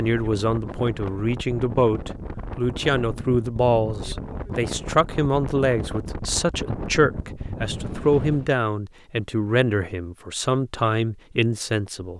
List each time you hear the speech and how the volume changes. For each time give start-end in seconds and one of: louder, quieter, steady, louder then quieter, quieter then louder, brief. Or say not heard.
0.0-12.1 steady.